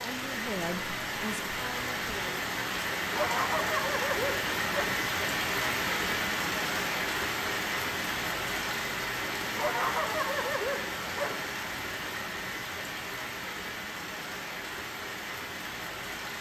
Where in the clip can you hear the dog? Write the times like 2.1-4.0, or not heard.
3.1-5.0, 9.6-11.4.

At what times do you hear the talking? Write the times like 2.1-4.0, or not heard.
0.0-2.5.